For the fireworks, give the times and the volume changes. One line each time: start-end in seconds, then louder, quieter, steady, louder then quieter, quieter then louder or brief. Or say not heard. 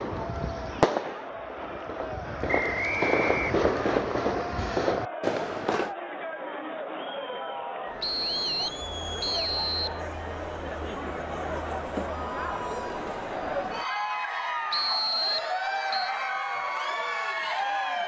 0.0-6.0 quieter then louder.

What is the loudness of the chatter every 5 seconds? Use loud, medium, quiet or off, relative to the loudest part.
medium, medium, loud, loud.